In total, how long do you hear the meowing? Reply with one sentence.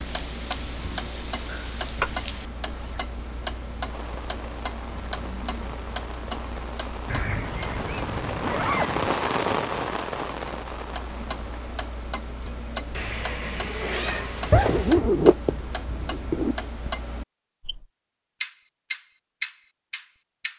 The meowing can be heard for 2 seconds in total.